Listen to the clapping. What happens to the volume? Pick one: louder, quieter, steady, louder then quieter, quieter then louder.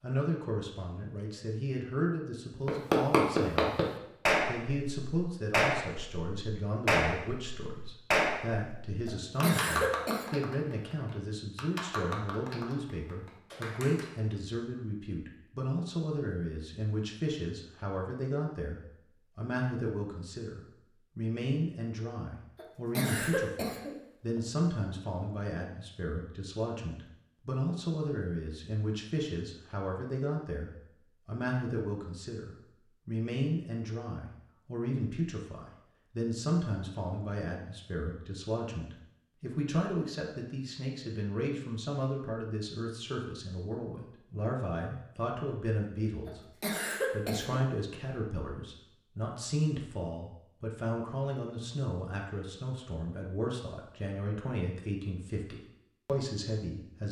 quieter.